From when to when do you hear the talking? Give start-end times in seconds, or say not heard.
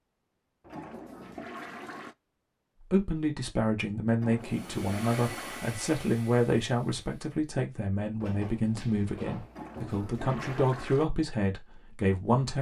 2.9-12.5.